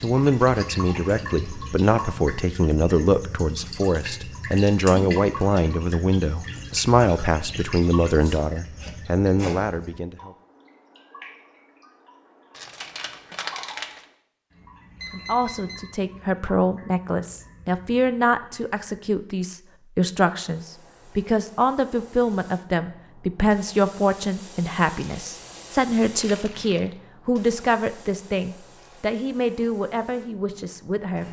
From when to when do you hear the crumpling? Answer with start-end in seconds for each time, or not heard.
12.5-14.1, 26.2-27.0.